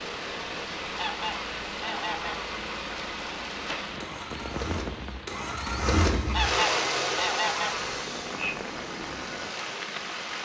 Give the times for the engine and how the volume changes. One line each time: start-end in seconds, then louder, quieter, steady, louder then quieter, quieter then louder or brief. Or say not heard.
0.0-10.4 louder then quieter.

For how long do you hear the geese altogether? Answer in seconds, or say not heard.
3 s.